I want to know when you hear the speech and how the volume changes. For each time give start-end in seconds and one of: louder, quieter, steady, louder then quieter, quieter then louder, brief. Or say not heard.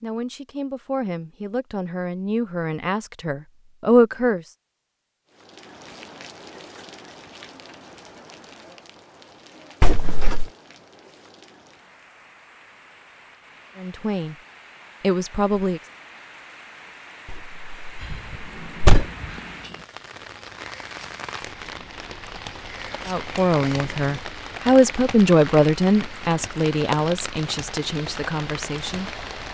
0.0-4.5 louder
13.8-14.3 brief
15.0-15.8 brief
23.1-29.1 louder then quieter.